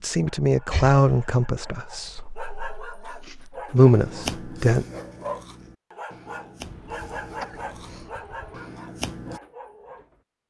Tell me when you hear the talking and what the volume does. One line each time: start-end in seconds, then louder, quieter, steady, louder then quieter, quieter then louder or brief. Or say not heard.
0.0-4.8 quieter then louder.